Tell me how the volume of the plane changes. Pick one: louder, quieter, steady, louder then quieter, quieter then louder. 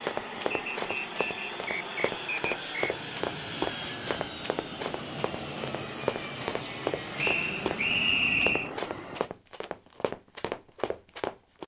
steady.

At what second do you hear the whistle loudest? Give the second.
8 s.